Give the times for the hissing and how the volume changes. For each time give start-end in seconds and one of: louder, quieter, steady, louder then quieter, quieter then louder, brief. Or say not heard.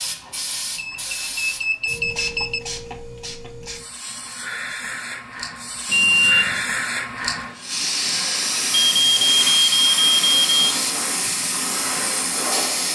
0.0-12.8 louder.